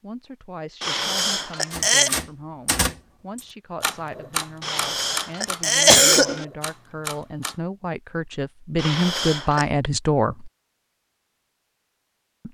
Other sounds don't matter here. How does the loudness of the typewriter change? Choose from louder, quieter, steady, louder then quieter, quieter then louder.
quieter.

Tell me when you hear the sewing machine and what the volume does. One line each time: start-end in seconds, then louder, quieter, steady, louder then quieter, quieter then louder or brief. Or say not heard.
not heard.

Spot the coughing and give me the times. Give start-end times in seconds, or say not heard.
0.8-2.1, 4.6-6.5, 8.8-9.7.